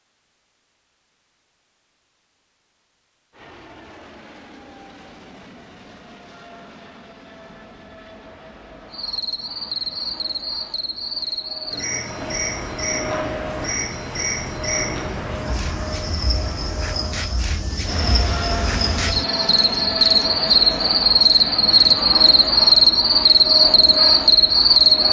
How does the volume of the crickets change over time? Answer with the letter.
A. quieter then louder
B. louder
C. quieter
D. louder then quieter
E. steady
B.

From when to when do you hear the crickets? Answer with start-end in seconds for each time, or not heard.
8.9-25.0.